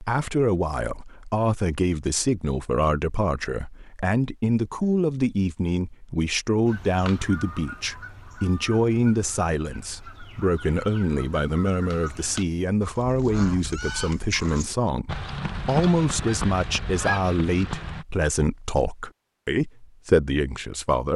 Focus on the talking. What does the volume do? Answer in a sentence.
The volume of the talking stays about the same.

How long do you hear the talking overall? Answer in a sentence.
The talking can be heard for 21 seconds in total.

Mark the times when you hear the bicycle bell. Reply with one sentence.
The bicycle bell can't be heard in this clip.